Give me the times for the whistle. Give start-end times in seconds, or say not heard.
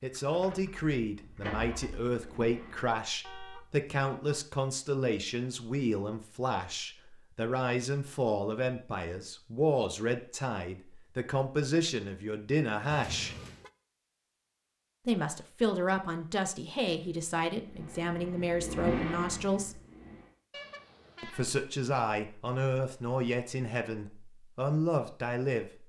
not heard.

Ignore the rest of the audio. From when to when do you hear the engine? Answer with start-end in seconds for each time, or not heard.
0.0-3.0, 16.9-20.4.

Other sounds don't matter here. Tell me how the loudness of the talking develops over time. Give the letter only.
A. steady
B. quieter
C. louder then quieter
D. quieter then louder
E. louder
A.